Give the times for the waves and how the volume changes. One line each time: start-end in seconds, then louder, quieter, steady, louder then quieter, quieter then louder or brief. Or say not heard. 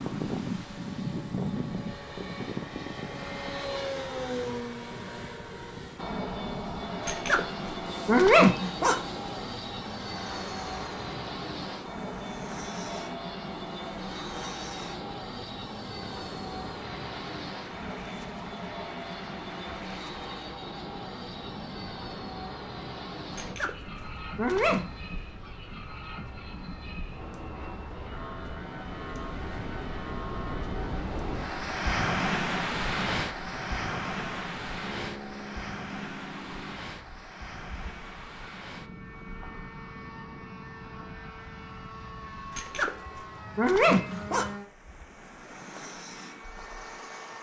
0.0-47.3 louder then quieter.